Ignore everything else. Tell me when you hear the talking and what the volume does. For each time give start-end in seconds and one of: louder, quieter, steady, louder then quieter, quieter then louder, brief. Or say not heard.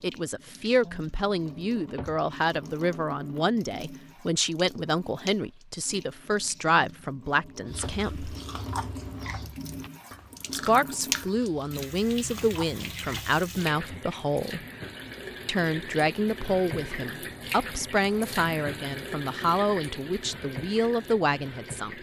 0.0-8.3 steady
10.5-14.6 steady
15.4-21.9 steady.